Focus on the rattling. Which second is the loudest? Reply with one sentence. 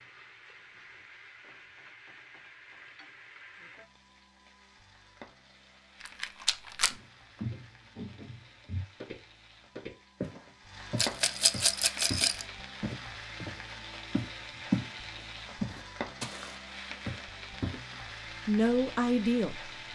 The volume of the rattling peaks at 12 seconds.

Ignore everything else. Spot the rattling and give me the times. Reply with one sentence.
The rattling can be heard from 6.0 to 7.0 s and from 10.9 to 12.4 s.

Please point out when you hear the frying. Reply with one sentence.
You can hear the frying from 0.0 to 19.9 s.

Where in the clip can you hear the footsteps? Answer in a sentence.
You can hear the footsteps from 6.9 to 14.9 s and from 15.6 to 17.8 s.